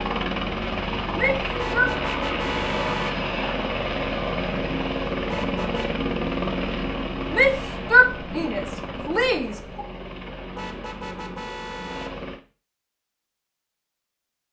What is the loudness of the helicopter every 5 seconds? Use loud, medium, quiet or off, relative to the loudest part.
loud, loud, medium.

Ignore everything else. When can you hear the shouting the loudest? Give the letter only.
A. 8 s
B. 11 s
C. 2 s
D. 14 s
A.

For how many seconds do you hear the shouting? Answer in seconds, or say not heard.
3 s.